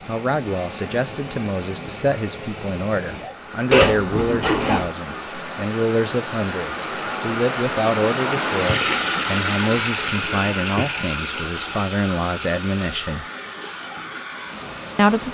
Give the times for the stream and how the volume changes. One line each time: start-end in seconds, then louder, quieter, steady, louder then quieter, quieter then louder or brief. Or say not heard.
0.0-15.2 louder then quieter.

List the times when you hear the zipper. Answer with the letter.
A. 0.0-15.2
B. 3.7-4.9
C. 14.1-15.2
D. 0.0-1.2
B.